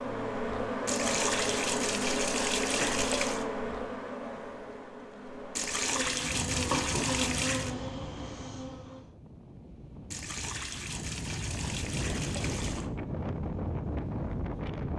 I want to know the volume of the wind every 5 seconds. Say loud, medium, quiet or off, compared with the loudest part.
off, medium, loud.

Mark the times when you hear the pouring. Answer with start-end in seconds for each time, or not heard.
0.8-3.5, 5.5-7.8, 10.1-12.9.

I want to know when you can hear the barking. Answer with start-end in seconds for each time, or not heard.
not heard.